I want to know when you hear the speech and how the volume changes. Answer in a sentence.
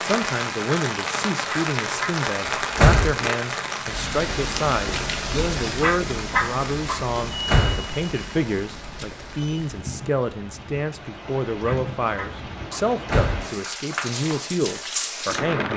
The speech can be heard from 0.0 to 15.7 s, at a steady volume.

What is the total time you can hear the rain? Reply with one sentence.
The rain can be heard for 16 seconds in total.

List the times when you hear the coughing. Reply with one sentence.
You can't hear the coughing here.